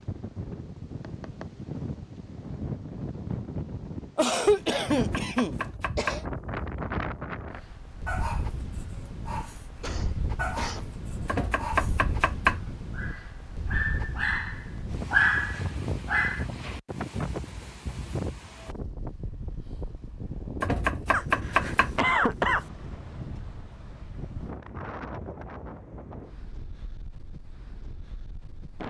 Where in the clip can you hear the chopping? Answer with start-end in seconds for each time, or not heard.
4.9-6.2, 11.2-12.8, 20.6-22.1.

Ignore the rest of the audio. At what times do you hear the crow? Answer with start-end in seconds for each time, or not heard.
not heard.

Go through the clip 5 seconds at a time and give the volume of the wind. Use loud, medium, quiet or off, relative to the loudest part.
loud, loud, loud, loud, loud, medium.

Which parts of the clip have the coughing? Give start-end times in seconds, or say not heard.
4.2-6.2, 9.8-10.9, 21.1-22.6.